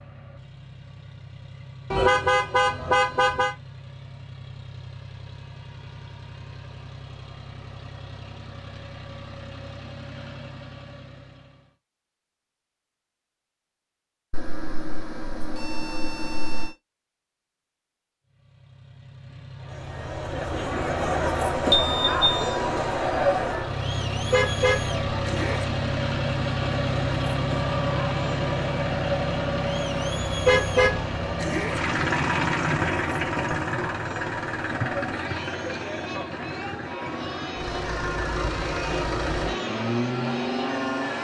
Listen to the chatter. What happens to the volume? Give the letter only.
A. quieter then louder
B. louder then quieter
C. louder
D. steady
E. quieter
E.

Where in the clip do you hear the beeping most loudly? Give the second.
22 s.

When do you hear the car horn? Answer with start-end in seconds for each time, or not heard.
1.9-3.5, 24.3-25.6, 30.4-31.8.